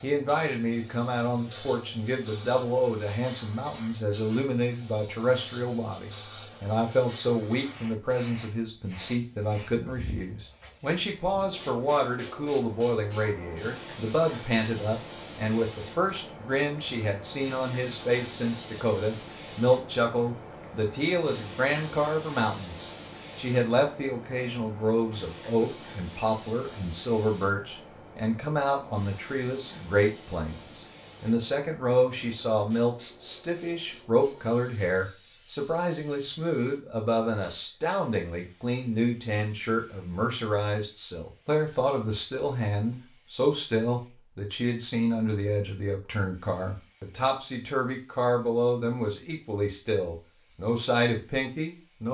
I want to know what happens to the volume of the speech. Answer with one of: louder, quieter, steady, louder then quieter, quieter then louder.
steady.